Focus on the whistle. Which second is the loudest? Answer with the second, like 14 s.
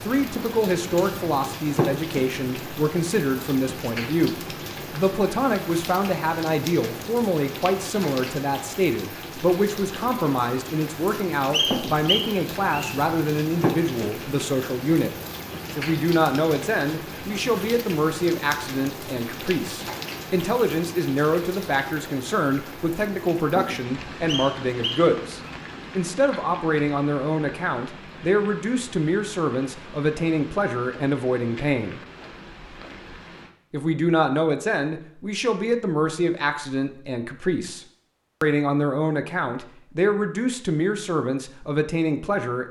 12 s.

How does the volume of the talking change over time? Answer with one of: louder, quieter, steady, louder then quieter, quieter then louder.
steady.